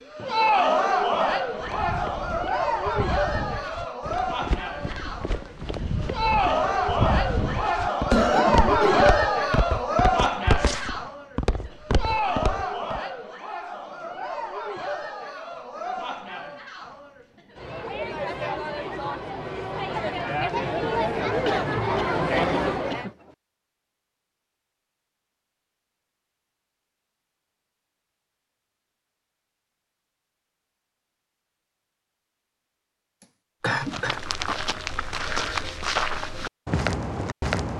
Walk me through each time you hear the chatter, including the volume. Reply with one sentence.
You can hear the chatter from 0.1 to 23.1 s, getting quieter then louder.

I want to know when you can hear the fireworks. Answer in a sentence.
The fireworks can't be heard in this clip.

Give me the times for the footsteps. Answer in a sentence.
You can hear the footsteps from 1.5 to 13.0 s and from 33.8 to 37.7 s.